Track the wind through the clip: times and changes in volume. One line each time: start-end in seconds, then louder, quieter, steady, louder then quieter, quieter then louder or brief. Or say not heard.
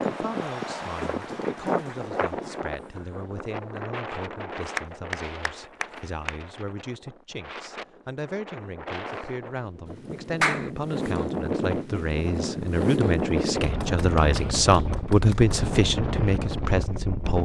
0.0-17.4 quieter then louder.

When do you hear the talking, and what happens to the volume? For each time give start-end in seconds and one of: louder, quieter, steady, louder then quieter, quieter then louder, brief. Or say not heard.
0.1-17.4 louder.